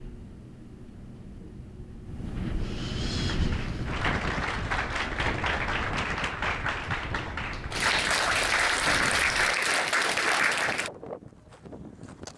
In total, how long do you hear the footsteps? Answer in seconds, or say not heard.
not heard.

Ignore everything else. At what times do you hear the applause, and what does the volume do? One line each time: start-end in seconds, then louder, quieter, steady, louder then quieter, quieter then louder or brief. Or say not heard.
3.1-10.9 louder.